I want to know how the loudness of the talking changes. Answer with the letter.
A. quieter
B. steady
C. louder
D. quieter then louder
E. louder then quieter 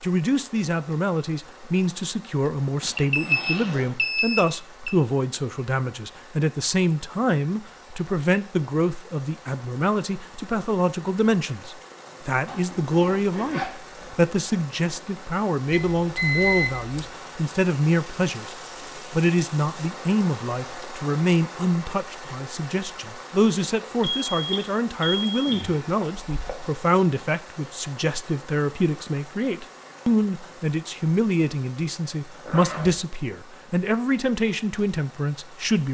B.